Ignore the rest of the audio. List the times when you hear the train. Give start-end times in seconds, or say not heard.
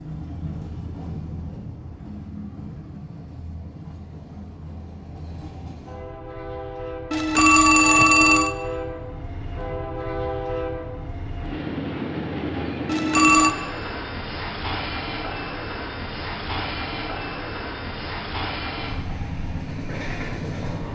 0.0-20.8.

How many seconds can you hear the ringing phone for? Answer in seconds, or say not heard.
2 s.